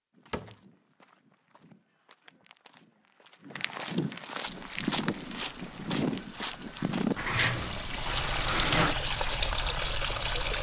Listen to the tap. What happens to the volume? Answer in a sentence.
The loudness of the tap goes up.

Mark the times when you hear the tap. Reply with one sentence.
You can hear the tap from 4.5 to 10.5 s.